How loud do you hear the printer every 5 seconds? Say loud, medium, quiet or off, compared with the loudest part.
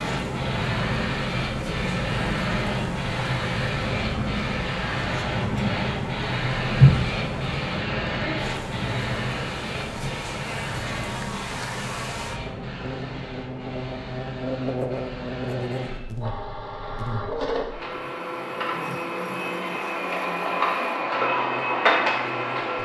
loud, loud, medium, medium, loud.